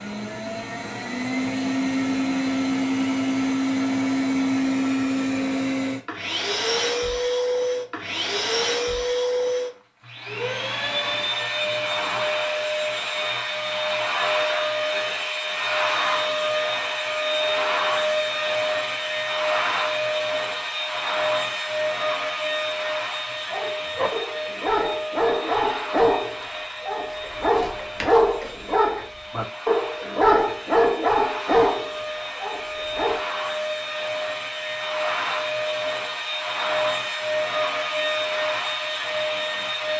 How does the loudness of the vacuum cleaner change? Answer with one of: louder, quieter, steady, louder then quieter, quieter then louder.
quieter then louder.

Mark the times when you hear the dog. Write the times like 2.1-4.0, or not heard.
23.5-33.2.